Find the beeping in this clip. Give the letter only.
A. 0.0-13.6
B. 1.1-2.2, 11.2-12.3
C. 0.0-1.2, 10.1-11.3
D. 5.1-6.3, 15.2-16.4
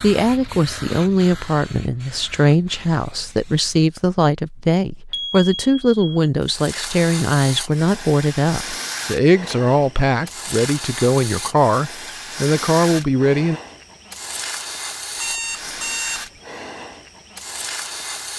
D.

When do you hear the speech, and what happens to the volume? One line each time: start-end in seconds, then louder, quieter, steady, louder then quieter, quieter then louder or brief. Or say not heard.
0.0-13.6 steady.